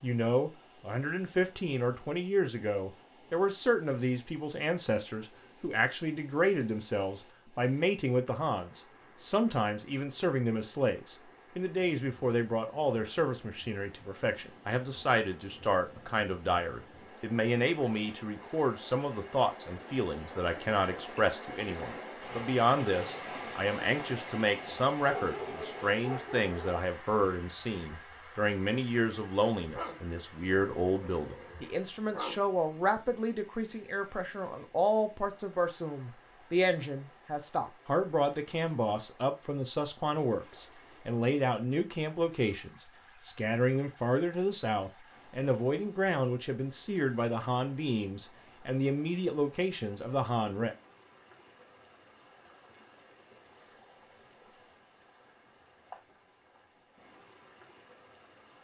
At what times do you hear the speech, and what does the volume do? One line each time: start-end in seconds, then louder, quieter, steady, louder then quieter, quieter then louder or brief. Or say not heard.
0.0-50.8 steady.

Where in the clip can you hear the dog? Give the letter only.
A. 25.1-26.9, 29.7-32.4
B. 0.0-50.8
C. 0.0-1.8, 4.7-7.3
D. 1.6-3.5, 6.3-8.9
A.